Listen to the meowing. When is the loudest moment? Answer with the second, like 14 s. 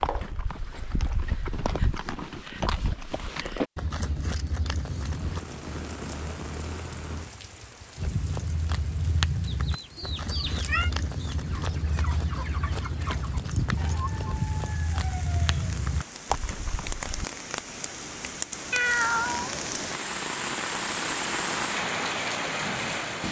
19 s.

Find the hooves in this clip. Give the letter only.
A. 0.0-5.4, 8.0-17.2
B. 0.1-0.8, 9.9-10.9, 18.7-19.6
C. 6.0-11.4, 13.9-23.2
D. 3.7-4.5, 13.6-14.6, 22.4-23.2
A.